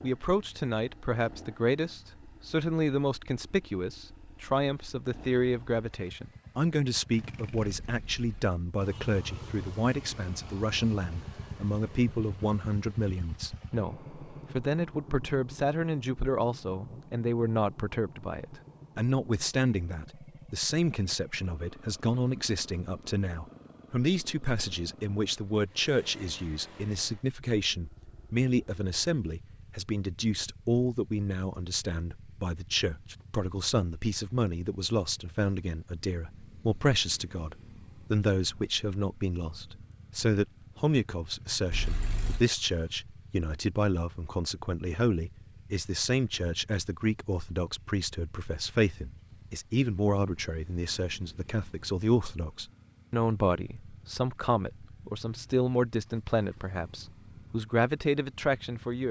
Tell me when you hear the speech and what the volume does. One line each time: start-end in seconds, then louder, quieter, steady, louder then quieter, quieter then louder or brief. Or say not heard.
0.0-59.0 steady.